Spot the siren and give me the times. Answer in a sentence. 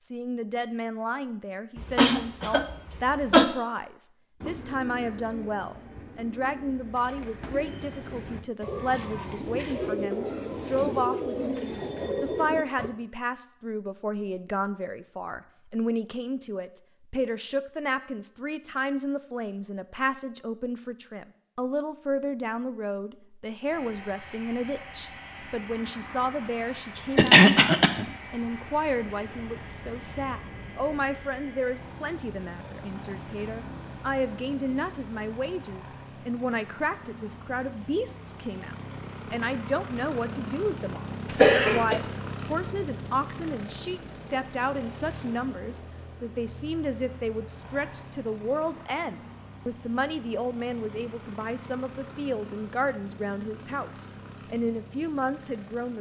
You can't hear the siren here.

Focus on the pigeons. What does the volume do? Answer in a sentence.
The volume of the pigeons goes up.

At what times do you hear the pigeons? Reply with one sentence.
You can hear the pigeons from 4.4 to 12.9 s.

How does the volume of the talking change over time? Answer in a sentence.
The loudness of the talking stays about the same.